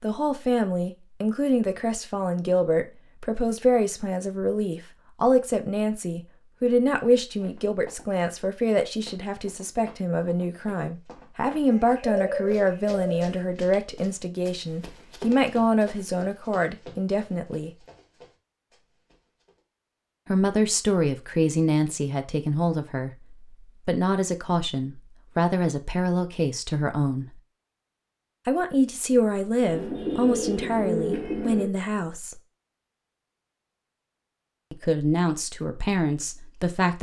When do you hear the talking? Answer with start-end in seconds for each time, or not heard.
0.0-17.7, 20.2-27.2, 28.4-32.4, 34.7-36.9.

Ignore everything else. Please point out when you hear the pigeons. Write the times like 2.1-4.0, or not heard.
11.7-13.4, 29.6-31.6.